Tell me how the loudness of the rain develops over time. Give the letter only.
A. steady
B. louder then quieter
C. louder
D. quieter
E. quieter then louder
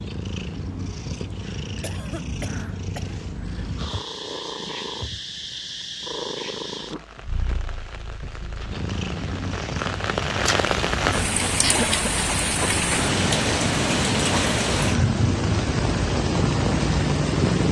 C.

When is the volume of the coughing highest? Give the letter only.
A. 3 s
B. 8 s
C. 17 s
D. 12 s
D.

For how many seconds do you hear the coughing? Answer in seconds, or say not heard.
2 s.